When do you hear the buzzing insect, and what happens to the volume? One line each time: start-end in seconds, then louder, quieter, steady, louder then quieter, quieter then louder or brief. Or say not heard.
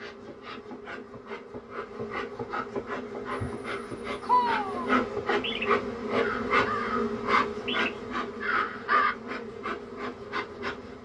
0.0-10.9 louder then quieter.